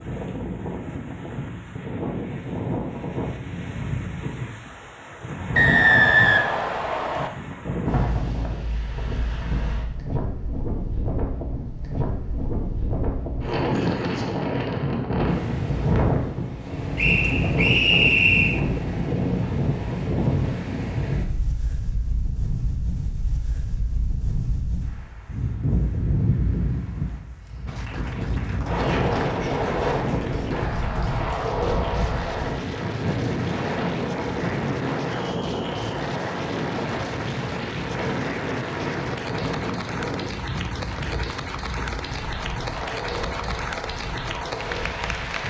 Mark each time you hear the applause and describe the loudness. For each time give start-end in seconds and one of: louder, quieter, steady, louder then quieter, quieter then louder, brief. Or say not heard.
27.6-45.4 louder.